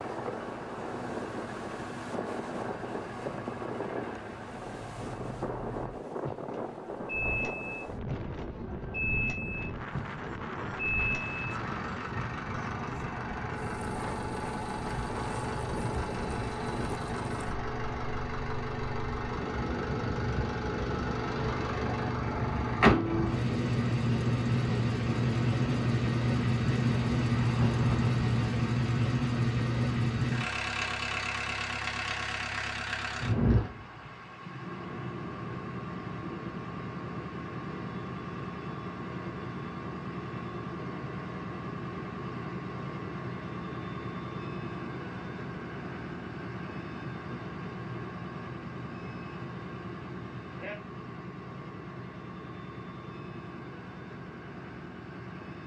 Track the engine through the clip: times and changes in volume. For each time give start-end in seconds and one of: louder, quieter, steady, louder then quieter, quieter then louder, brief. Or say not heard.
0.0-55.6 louder then quieter.